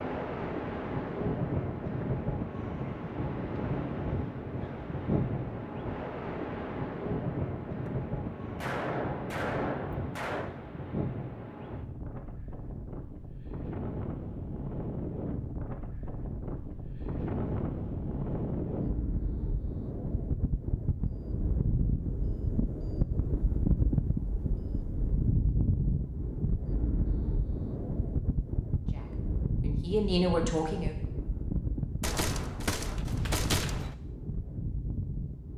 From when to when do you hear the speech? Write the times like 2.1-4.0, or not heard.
28.9-30.9.